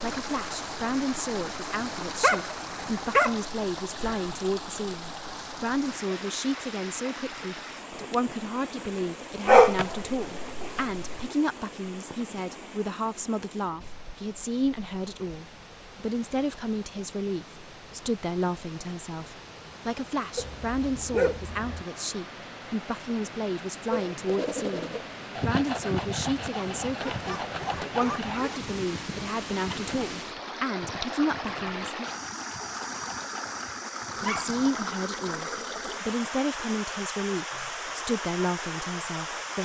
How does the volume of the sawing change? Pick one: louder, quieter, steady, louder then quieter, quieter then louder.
quieter.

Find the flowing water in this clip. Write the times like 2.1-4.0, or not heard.
0.0-39.6.